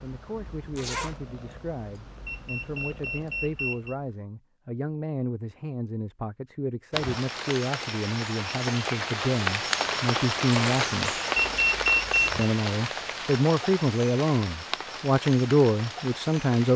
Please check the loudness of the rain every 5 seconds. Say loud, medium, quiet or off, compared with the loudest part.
off, loud, loud, medium.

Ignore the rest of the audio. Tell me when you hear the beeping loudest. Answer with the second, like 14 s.
12 s.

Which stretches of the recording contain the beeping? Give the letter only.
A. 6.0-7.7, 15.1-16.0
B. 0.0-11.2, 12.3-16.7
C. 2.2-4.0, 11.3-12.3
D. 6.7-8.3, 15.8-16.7
C.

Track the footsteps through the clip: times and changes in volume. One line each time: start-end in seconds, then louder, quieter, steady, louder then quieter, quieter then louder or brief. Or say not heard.
not heard.